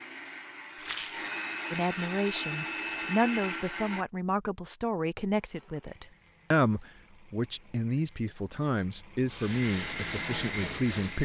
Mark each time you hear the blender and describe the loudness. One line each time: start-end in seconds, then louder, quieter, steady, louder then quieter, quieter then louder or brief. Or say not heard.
0.0-4.0 louder
9.2-11.2 brief.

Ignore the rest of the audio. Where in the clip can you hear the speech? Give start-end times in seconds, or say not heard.
1.7-11.2.